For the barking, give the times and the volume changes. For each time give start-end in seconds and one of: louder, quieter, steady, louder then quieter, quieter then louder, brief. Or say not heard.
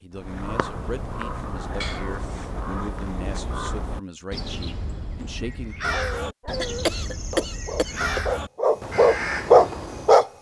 5.2-10.2 louder.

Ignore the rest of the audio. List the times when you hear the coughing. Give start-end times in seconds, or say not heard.
1.8-2.5, 6.5-8.2.